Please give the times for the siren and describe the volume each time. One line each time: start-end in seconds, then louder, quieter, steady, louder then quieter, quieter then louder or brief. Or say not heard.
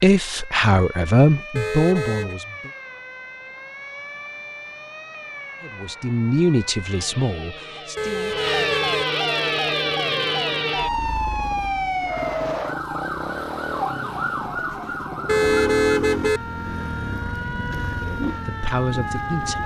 0.1-19.6 louder then quieter.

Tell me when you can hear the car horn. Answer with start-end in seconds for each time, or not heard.
1.6-2.4, 8.0-9.1, 15.2-16.4.